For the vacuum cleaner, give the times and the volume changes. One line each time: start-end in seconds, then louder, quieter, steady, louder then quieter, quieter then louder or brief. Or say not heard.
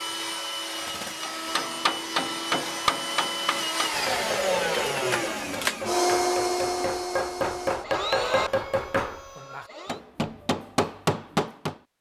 0.0-10.0 louder then quieter.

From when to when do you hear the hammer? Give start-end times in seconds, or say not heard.
1.2-11.8.